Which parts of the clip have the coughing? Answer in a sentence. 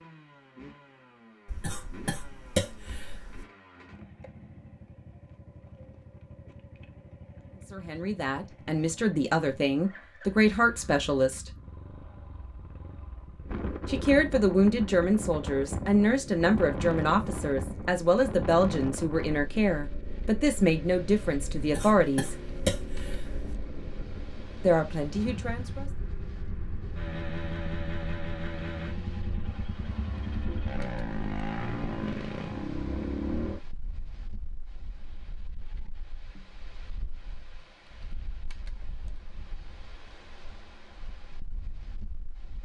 The coughing can be heard from 1.4 to 3.5 s and from 21.6 to 23.6 s.